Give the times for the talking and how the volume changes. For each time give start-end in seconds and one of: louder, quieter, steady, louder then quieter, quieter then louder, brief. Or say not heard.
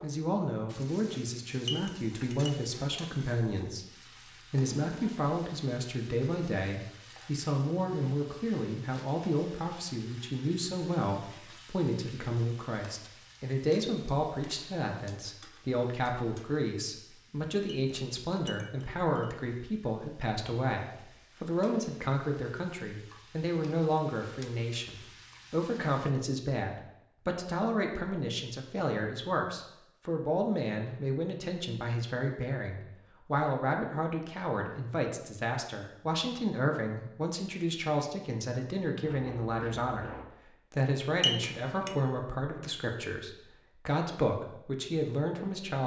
0.0-45.8 steady.